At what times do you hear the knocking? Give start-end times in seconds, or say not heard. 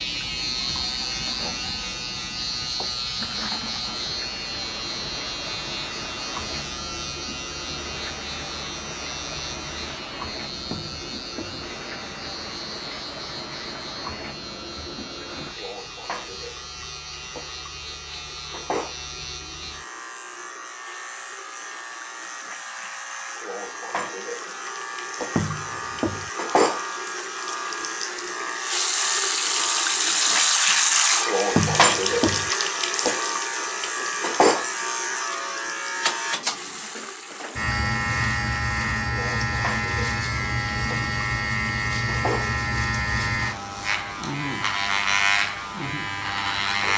10.7-11.7, 25.4-26.3, 31.6-32.5.